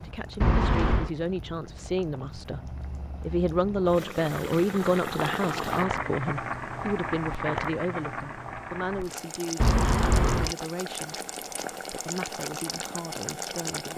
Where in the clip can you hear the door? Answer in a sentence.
The door can be heard from 0.4 to 1.1 s and from 9.6 to 10.6 s.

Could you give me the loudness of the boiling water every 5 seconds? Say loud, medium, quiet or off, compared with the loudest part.
medium, loud, loud.